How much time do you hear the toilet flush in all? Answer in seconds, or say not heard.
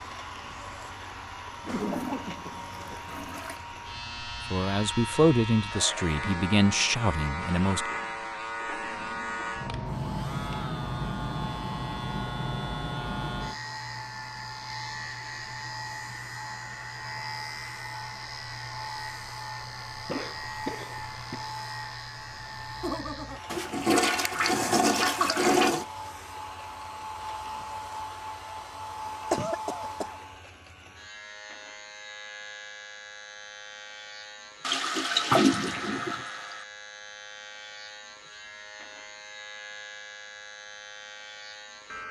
6 s.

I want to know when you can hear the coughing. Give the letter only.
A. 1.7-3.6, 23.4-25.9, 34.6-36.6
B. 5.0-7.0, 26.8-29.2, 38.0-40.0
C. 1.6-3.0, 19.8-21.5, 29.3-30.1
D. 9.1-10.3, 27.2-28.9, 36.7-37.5
C.